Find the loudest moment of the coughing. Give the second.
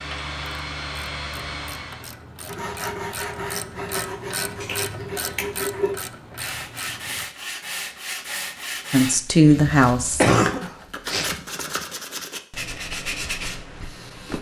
10 s.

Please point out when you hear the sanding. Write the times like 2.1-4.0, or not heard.
2.5-14.3.